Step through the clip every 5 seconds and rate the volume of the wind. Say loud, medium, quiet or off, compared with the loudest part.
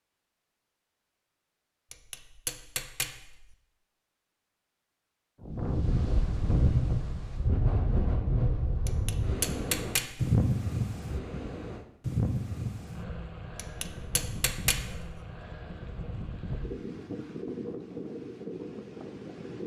off, loud, loud, medium.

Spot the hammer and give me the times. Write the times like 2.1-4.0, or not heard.
1.9-3.5, 8.8-10.4, 13.6-15.2.